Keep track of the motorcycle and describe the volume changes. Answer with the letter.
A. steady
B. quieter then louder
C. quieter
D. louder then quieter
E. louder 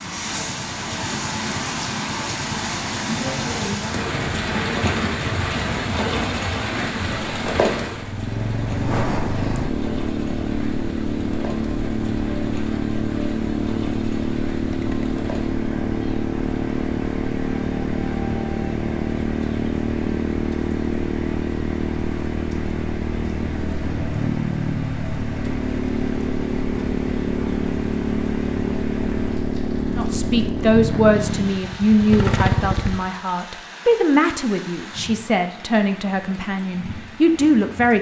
E.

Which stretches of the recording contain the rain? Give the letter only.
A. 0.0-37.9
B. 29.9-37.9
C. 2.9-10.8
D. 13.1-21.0
A.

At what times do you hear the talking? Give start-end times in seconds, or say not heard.
29.9-37.9.